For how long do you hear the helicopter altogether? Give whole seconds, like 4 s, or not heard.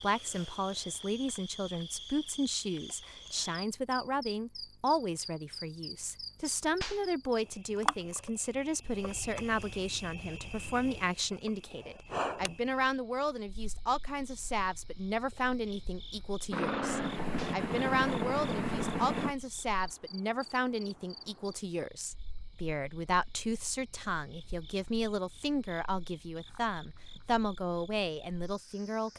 3 s.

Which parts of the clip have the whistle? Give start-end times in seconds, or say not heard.
not heard.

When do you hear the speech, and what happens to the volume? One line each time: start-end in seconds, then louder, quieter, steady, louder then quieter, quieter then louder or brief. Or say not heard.
0.0-29.1 steady.